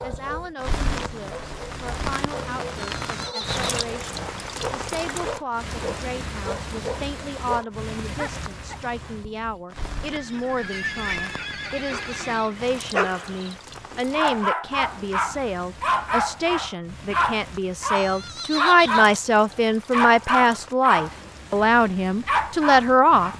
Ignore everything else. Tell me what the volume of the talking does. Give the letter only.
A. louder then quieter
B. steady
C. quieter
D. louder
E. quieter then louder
D.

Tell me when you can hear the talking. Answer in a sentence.
The talking can be heard from 0.0 to 23.3 s.